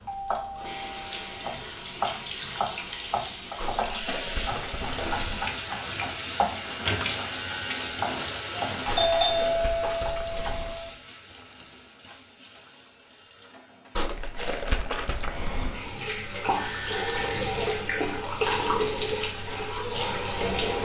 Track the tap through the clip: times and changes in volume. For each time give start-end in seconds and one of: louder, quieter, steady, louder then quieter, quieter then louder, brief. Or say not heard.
0.0-20.8 quieter then louder.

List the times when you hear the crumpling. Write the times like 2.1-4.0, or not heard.
3.6-5.5, 8.8-10.7, 13.9-15.8.